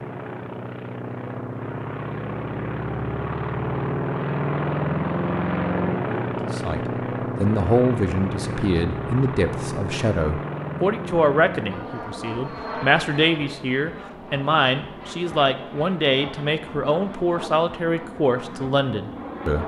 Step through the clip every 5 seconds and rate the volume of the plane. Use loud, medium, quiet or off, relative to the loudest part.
loud, loud, medium, medium.